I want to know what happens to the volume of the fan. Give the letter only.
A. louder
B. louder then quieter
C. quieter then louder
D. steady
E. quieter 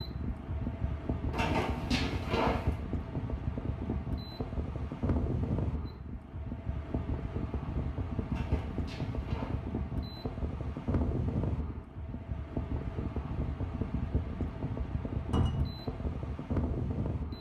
D.